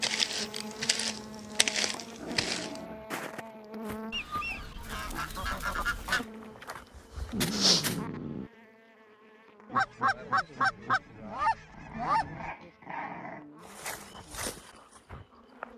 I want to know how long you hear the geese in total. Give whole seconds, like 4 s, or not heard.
5 s.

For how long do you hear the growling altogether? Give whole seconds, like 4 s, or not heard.
5 s.